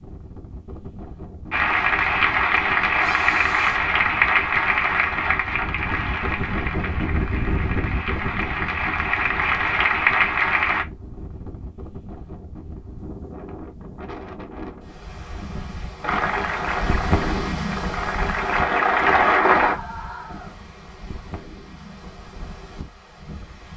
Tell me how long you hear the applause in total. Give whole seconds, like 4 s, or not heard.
13 s.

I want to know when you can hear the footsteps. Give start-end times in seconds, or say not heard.
not heard.